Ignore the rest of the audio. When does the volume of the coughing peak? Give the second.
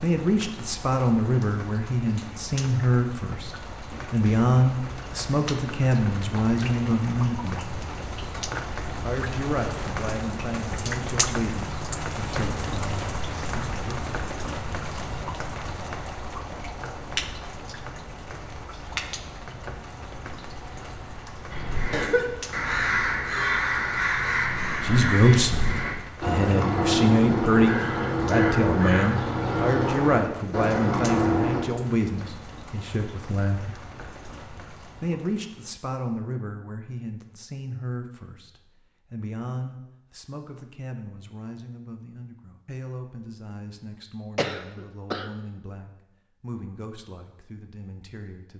22 s.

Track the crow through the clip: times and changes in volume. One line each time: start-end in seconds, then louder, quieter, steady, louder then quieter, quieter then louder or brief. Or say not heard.
21.5-31.6 steady.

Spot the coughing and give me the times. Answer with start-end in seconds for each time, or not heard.
21.9-22.4, 44.4-45.3.